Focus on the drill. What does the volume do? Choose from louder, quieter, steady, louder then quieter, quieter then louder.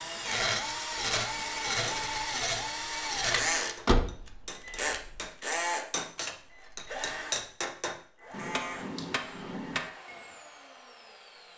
quieter.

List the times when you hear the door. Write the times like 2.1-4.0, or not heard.
3.8-5.2.